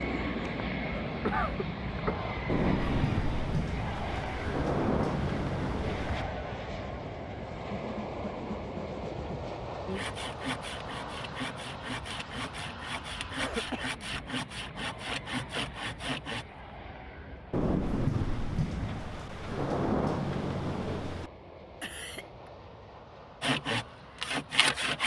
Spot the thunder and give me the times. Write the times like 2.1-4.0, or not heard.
2.5-6.2, 17.5-21.3.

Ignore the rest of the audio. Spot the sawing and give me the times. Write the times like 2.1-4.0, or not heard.
7.7-16.4, 23.4-25.0.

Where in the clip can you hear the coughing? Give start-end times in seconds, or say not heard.
1.2-2.3, 13.3-14.0, 21.8-22.5.